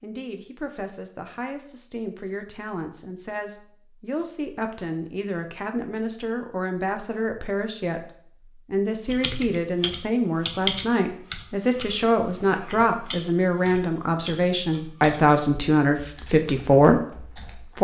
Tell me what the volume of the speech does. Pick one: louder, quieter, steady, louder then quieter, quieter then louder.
louder.